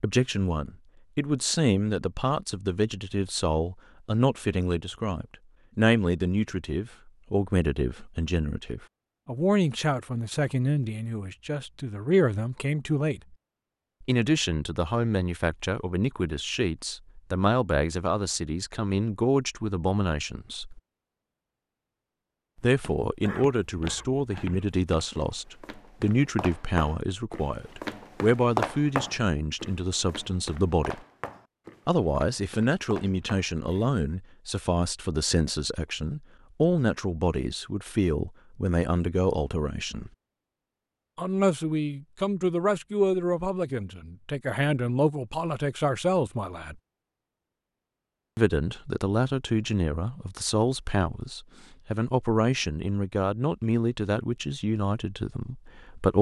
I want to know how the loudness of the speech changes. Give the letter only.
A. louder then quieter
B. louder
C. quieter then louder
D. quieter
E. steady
E.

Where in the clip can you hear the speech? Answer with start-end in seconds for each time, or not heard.
0.0-13.3, 14.0-20.8, 22.6-31.0, 31.9-40.1, 41.1-46.8, 48.4-56.1.